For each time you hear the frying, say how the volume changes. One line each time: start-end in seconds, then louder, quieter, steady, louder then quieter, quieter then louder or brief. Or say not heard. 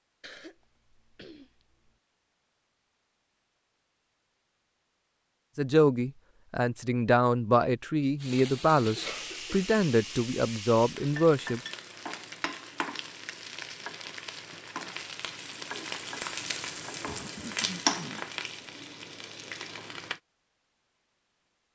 8.2-20.2 louder.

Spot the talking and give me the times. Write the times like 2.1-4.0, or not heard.
5.5-11.6.